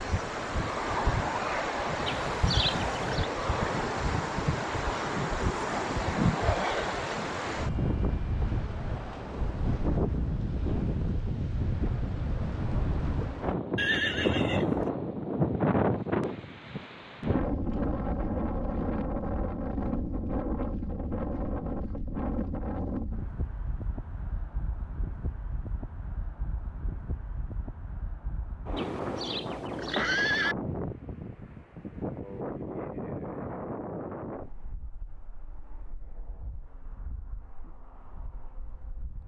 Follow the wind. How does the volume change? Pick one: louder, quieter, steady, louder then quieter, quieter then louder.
quieter.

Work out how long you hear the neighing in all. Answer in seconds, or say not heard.
4 s.